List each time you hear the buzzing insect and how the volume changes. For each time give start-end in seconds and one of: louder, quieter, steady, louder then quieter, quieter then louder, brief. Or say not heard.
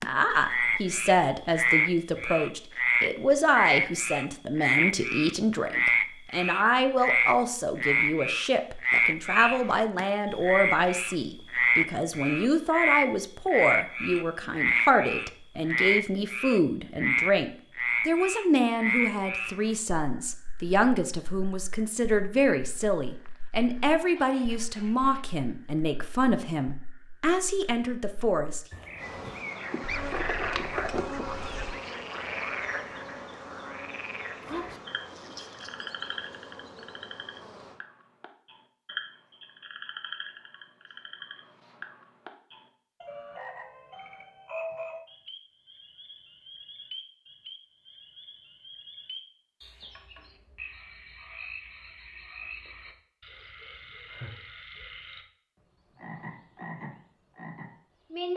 28.9-37.8 quieter.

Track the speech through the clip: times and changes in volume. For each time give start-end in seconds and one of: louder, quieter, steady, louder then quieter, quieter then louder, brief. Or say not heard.
0.0-28.6 steady.